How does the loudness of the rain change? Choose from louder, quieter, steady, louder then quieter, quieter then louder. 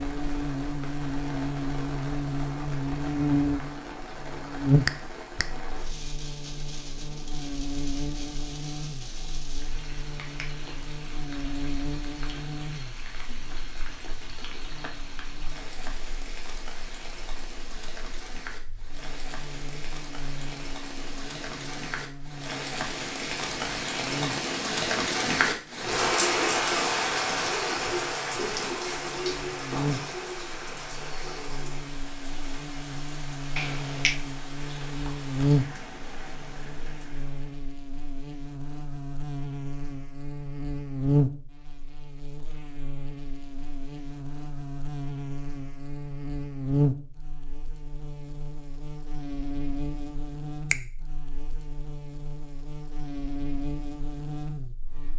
louder then quieter.